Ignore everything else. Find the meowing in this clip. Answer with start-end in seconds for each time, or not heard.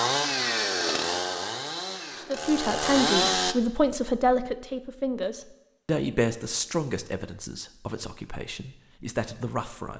not heard.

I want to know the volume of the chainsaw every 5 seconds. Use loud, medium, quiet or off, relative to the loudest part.
loud, off.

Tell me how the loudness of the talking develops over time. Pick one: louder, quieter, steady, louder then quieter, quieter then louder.
quieter.